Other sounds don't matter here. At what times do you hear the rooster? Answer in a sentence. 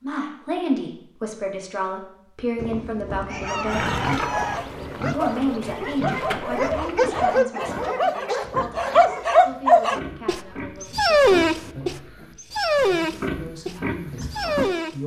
You can hear the rooster from 2.5 to 4.6 s.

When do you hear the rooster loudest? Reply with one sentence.
The volume of the rooster peaks at 4 seconds.